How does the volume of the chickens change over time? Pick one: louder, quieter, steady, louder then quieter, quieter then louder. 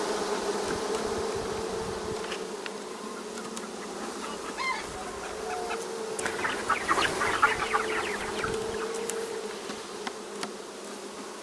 louder then quieter.